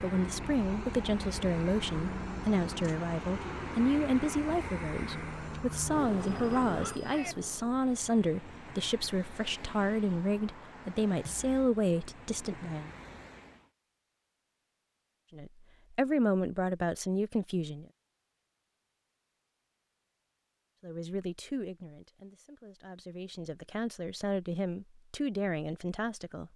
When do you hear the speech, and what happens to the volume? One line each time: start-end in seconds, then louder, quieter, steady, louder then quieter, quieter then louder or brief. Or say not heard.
0.0-12.9 steady
15.3-17.9 brief
20.8-26.5 quieter then louder.